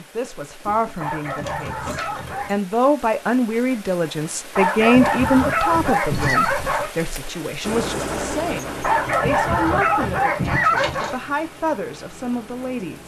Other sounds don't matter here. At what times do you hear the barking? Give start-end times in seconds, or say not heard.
1.0-2.5, 4.5-6.9, 8.8-11.2.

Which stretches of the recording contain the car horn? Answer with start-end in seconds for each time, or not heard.
not heard.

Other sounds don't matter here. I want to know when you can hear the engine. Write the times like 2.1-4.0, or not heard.
7.6-13.0.